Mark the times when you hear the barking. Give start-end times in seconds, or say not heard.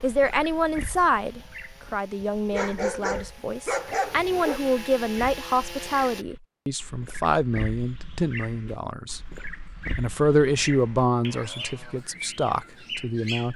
2.2-4.6.